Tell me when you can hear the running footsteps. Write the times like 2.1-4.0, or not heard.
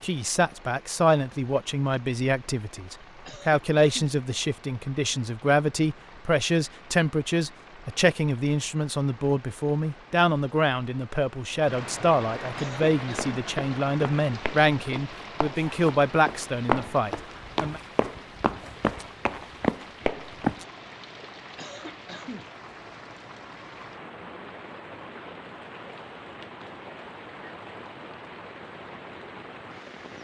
12.7-20.6.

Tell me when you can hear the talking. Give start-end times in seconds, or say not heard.
0.0-17.8.